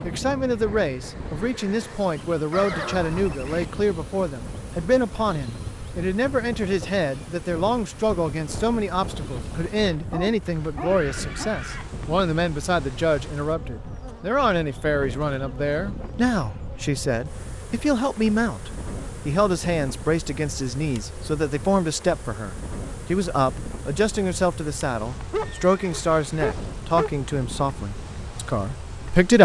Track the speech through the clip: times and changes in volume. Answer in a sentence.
You can hear the speech from 0.0 to 29.3 s, at a steady volume.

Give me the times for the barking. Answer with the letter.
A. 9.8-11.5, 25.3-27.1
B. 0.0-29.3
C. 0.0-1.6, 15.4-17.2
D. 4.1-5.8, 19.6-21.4
A.